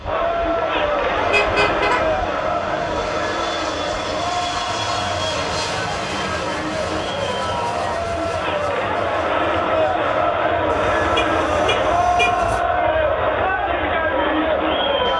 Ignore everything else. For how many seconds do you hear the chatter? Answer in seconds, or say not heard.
15 s.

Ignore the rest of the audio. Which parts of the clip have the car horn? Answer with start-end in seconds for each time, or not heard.
1.1-2.2, 10.7-12.6.